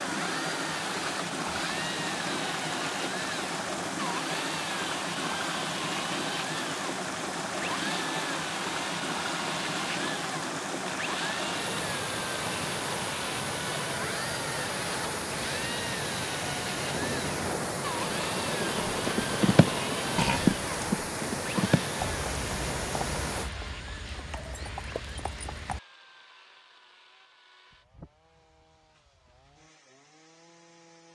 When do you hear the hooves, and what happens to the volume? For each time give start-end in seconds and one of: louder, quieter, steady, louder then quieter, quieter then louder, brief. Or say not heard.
18.9-25.8 quieter.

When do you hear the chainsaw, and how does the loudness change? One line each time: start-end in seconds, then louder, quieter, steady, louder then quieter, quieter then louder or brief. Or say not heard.
0.0-31.1 quieter.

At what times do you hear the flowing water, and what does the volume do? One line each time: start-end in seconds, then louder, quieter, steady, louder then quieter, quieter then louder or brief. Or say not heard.
0.0-23.5 steady.